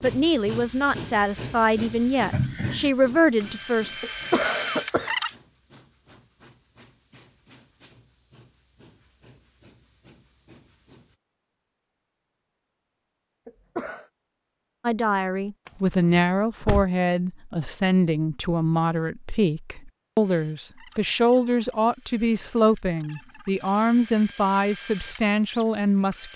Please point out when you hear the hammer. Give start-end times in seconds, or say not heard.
not heard.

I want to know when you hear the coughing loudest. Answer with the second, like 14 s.
4 s.